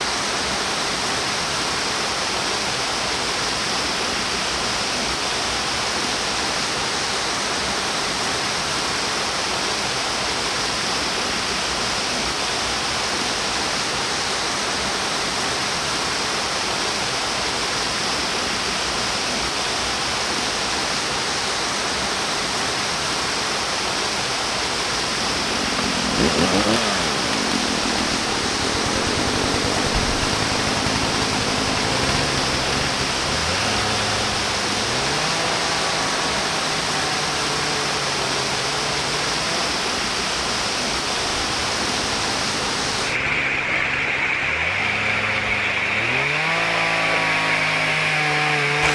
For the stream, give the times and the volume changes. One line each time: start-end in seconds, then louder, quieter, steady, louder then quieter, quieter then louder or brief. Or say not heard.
0.0-48.8 steady.